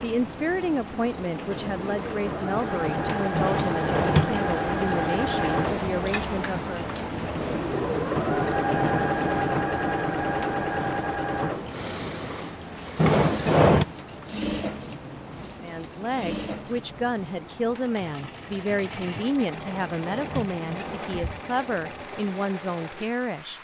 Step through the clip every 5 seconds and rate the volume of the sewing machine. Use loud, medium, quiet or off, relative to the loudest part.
loud, loud, medium, quiet, quiet.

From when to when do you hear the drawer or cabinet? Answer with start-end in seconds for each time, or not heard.
3.3-4.3, 12.9-13.8, 19.5-21.4.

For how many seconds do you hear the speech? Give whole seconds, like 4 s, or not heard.
15 s.